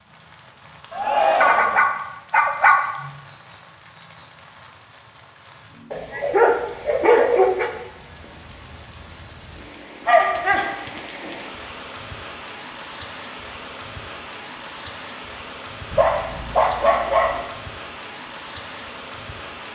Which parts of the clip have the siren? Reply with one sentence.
You can't hear the siren here.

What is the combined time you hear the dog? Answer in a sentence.
The dog can be heard for 6 seconds in total.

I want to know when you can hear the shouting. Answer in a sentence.
The shouting can be heard from 0.9 to 1.8 s.